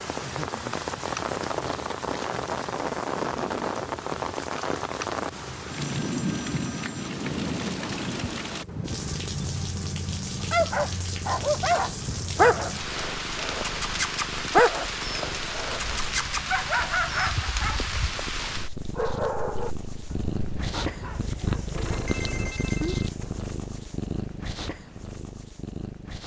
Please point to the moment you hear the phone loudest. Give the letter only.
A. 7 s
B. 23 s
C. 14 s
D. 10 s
B.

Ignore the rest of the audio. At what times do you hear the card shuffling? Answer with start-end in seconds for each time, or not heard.
not heard.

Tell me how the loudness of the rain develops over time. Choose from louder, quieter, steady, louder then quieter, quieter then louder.
steady.